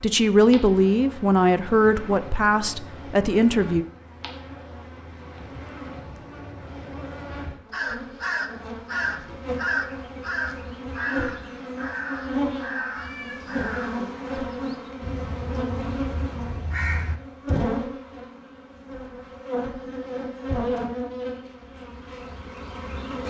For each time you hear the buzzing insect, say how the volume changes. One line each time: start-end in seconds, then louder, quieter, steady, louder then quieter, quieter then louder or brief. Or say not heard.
0.0-23.2 louder.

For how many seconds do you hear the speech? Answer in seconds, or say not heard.
4 s.